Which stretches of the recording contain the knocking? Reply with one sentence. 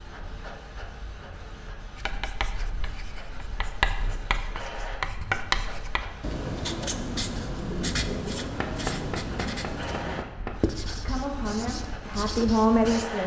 You can hear the knocking from 8.6 to 10.6 s.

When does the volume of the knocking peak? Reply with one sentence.
The loudest moment of the knocking is at 9 seconds.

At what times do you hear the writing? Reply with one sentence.
You can hear the writing from 1.9 to 13.1 s.